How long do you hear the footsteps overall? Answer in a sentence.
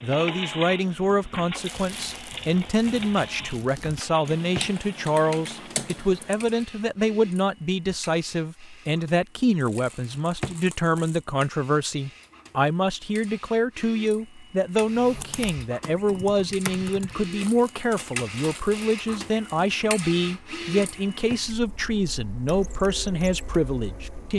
You can't hear the footsteps here.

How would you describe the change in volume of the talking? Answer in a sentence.
The loudness of the talking stays about the same.